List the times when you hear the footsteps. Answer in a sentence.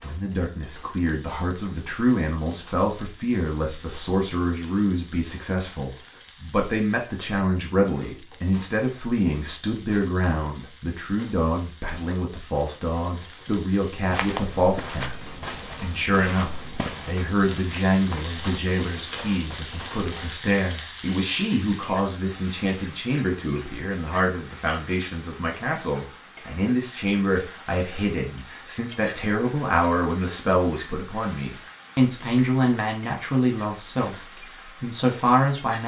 You can hear the footsteps from 14.1 to 20.3 s.